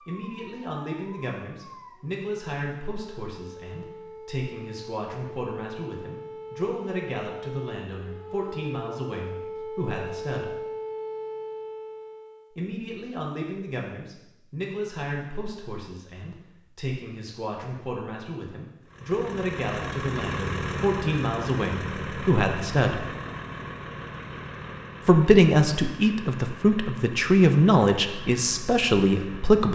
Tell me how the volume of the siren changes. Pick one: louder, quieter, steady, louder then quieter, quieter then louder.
louder.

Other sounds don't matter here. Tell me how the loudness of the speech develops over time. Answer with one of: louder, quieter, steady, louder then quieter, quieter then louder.
louder.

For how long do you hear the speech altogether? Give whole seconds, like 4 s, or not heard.
26 s.